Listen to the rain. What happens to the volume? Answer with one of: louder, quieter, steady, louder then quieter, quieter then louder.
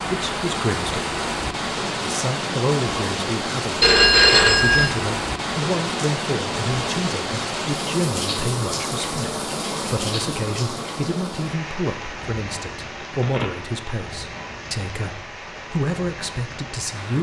quieter.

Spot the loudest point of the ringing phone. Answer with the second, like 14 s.
4 s.